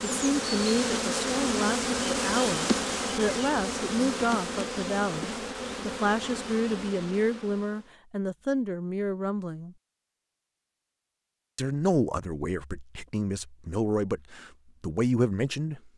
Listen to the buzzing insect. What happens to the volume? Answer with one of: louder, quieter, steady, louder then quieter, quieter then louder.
quieter.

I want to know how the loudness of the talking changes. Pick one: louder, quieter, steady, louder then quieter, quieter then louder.
steady.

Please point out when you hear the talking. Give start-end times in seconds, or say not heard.
0.0-9.8, 11.6-15.9.